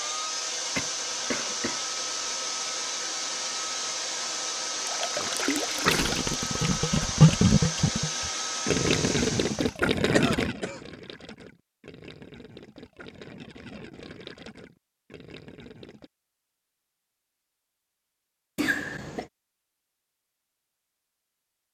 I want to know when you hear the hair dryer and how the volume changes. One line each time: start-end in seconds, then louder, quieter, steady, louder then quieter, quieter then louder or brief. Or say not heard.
0.0-9.8 steady.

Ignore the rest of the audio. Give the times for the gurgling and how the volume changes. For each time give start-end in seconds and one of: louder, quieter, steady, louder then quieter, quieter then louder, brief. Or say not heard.
4.8-16.1 quieter.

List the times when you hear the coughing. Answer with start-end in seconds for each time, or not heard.
0.8-2.4, 10.2-10.8, 18.6-19.3.